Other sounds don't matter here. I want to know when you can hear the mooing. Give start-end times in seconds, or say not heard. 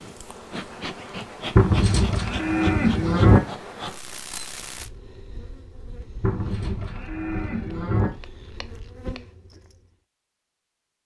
1.6-3.4, 6.2-8.1.